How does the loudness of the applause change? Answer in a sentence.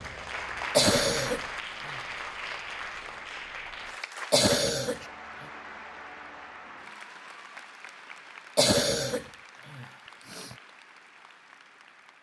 The volume of the applause goes down.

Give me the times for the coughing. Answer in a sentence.
You can hear the coughing from 0.7 to 1.9 s, from 4.3 to 5.5 s and from 8.6 to 10.6 s.